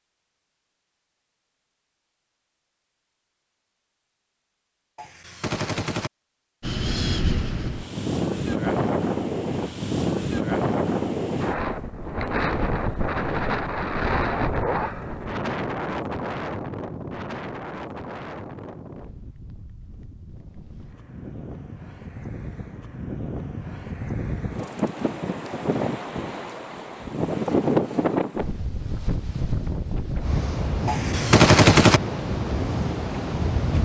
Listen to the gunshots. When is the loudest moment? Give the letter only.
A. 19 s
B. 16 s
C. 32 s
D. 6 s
C.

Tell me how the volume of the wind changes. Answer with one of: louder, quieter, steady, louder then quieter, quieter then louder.
quieter then louder.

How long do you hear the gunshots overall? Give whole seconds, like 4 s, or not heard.
2 s.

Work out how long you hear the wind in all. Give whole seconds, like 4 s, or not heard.
27 s.